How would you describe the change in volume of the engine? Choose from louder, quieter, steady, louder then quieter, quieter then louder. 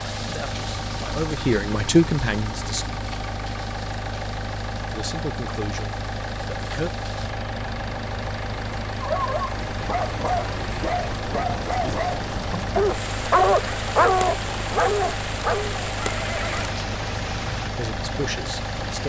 steady.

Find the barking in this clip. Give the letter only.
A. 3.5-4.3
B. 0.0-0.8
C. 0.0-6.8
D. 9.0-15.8
D.